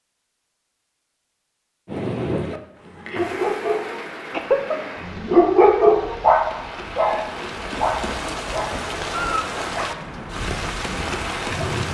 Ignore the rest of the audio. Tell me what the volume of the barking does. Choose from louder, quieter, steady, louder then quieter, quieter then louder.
louder then quieter.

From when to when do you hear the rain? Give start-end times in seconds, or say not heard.
1.9-11.8.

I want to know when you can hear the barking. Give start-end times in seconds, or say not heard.
2.4-11.8.